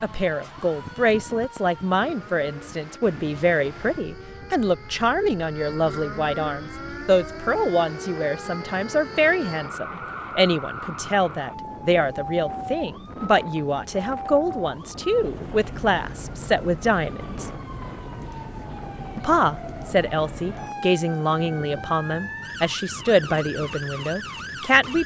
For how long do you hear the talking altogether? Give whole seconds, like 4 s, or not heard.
23 s.